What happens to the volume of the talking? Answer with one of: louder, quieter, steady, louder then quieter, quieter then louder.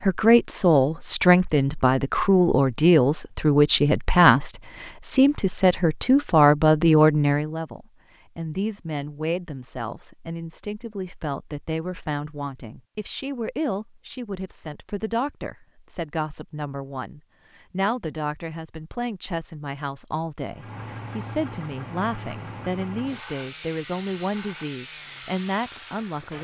quieter.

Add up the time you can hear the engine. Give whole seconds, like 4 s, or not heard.
6 s.